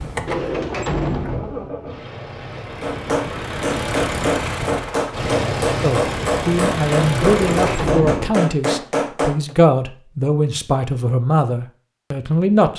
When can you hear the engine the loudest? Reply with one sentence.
The loudest moment of the engine is at 6 seconds.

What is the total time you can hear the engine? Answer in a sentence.
The engine can be heard for 8 seconds in total.